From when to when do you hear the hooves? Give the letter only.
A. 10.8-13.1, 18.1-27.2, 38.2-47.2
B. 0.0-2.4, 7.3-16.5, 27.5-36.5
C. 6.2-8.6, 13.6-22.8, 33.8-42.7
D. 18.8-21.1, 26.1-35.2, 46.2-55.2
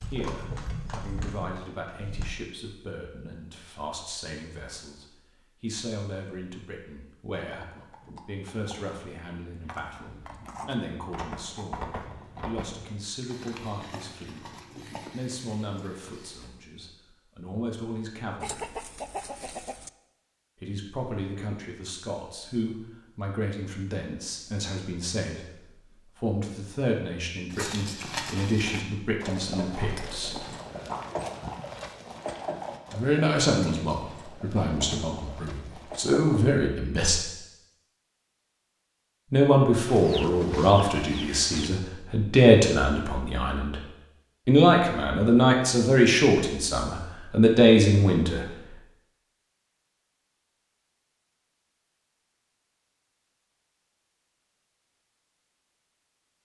B.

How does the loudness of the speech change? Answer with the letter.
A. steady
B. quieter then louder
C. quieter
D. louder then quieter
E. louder
E.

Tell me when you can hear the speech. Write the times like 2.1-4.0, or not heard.
0.0-18.8, 20.6-30.4, 32.9-37.2, 39.3-43.8, 44.5-48.5.